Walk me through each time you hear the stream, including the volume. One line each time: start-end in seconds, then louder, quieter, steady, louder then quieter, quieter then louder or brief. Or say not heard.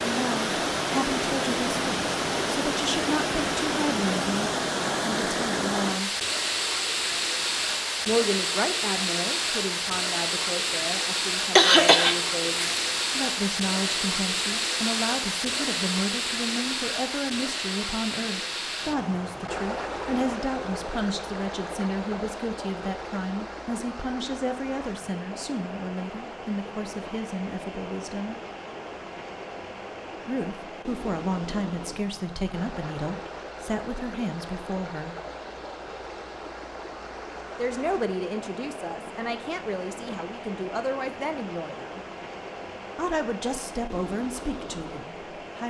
0.0-45.6 quieter.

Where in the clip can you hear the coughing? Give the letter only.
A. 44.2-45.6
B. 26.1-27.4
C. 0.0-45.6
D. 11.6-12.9
D.